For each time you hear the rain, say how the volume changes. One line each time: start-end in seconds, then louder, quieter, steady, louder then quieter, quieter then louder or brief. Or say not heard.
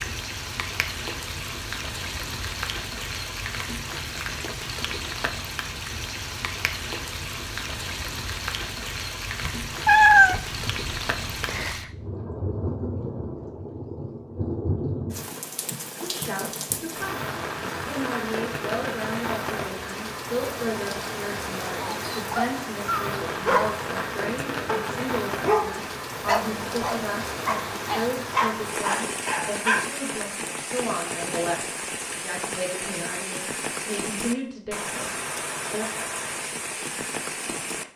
0.0-37.9 steady.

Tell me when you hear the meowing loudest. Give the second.
10 s.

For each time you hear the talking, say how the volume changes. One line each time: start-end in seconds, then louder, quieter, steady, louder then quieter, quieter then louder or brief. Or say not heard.
16.0-35.9 steady.